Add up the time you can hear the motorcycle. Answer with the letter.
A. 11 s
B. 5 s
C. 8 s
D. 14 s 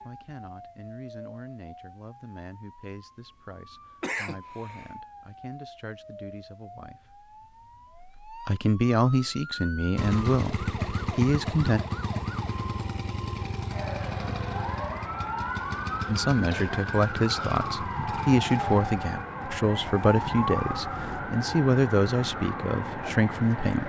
A.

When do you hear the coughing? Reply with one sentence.
You can hear the coughing from 4.0 to 4.9 s and from 16.4 to 17.6 s.